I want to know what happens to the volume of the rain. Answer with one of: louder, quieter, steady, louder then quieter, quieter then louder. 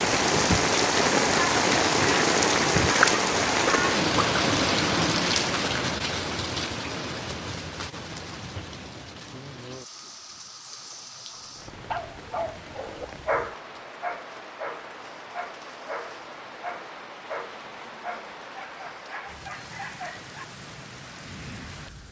quieter.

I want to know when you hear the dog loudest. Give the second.
13 s.